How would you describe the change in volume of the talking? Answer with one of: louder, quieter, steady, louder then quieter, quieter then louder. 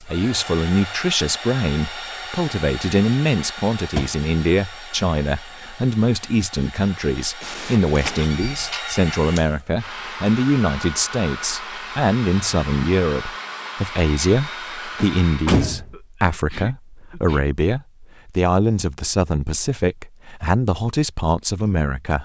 steady.